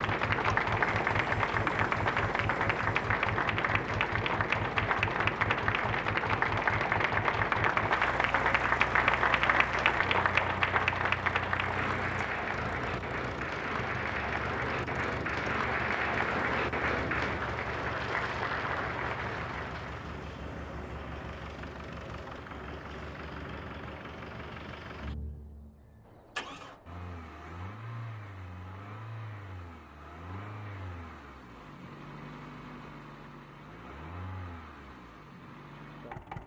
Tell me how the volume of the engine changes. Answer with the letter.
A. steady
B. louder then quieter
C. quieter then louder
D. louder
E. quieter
E.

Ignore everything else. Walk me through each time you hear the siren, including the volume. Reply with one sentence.
You can't hear the siren here.